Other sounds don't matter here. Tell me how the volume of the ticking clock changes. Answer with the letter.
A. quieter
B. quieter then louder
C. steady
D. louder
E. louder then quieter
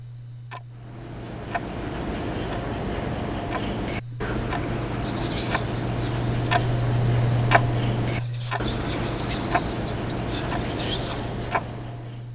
E.